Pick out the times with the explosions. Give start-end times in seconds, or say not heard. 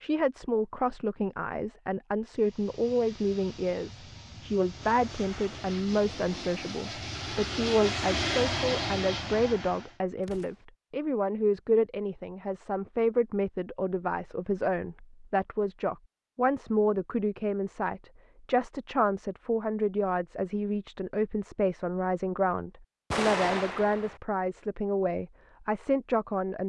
10.2-10.7, 23.1-24.2.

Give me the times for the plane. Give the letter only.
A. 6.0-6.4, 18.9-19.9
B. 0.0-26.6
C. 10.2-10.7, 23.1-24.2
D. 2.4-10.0
D.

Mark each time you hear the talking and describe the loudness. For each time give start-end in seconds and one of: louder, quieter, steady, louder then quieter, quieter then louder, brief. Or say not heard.
0.0-26.6 steady.